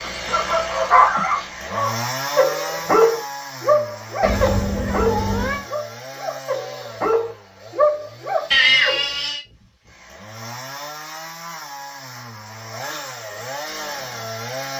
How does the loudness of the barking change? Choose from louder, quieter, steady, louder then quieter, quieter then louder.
quieter then louder.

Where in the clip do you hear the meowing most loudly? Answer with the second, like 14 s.
9 s.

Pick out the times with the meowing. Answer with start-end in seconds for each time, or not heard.
4.2-5.7, 8.5-9.4.